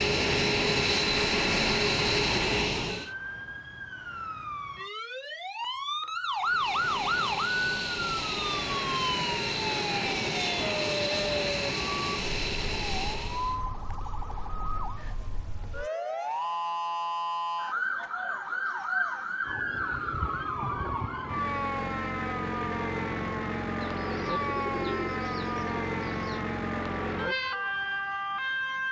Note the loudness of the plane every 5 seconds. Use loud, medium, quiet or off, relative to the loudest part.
loud, medium, medium, off, off, off.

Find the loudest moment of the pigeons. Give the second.
25 s.